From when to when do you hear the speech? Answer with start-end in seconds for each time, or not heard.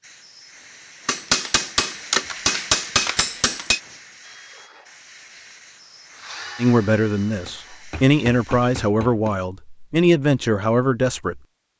6.5-11.4.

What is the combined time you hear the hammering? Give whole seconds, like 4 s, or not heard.
5 s.